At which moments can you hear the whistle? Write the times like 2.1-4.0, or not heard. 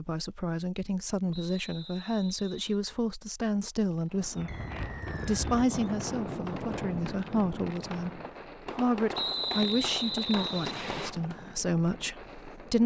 1.3-2.8, 4.5-5.5, 9.1-11.2.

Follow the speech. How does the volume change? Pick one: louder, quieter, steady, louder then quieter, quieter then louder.
steady.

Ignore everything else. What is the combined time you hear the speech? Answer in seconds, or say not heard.
12 s.